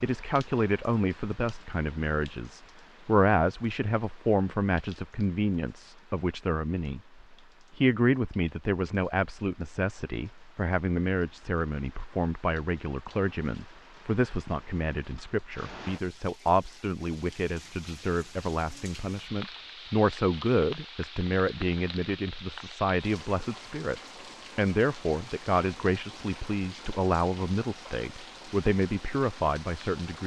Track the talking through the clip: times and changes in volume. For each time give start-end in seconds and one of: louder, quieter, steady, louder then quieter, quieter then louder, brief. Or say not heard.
0.0-30.2 steady.